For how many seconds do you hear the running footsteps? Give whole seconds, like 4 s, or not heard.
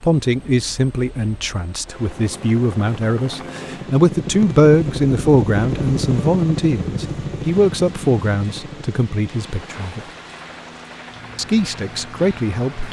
not heard.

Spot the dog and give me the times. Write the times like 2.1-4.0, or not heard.
not heard.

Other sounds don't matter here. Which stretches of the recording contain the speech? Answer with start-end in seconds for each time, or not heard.
0.0-10.0, 11.3-12.8.